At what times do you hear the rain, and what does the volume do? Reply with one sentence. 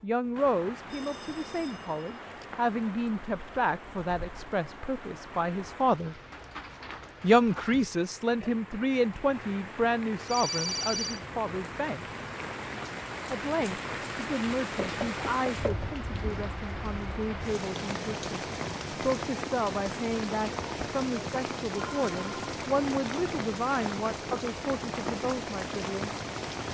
The rain can be heard from 0.0 to 26.7 s, getting louder.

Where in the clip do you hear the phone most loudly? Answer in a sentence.
The loudest moment of the phone is at 11 seconds.